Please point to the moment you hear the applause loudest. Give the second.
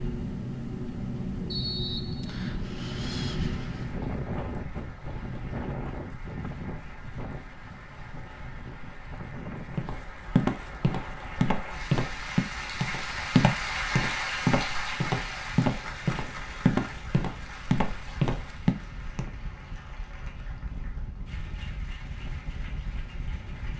14 s.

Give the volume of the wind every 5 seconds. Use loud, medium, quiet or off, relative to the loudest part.
loud, medium, quiet, quiet, medium.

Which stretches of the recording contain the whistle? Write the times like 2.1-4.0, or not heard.
1.5-2.6.